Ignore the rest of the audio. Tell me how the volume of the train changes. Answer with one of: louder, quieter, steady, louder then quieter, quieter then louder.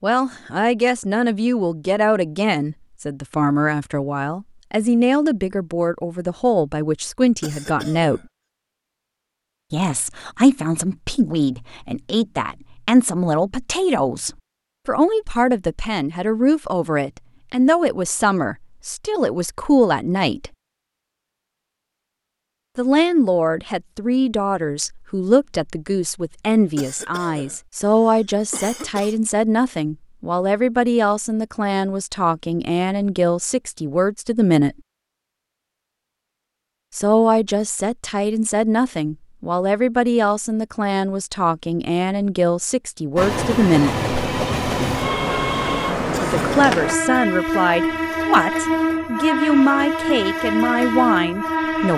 steady.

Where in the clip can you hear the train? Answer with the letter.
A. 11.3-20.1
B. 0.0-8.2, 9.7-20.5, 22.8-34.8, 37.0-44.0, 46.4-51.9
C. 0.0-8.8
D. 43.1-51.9
D.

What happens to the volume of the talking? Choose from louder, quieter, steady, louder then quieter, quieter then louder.
steady.